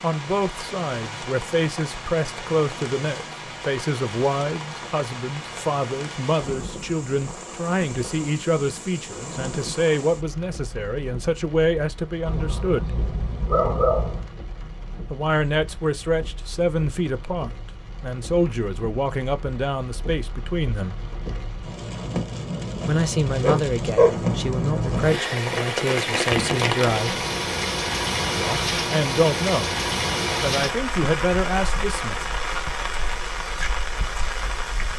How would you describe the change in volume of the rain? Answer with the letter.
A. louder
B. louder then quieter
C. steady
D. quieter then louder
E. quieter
D.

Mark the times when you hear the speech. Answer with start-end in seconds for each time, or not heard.
0.0-13.0, 15.1-21.1, 22.9-27.2, 28.4-29.8, 30.4-32.2.